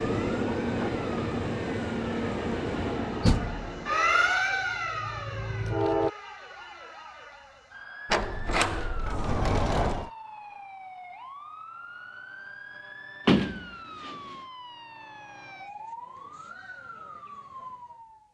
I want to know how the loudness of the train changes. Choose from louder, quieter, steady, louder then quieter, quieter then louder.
quieter.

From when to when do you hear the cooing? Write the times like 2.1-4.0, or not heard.
not heard.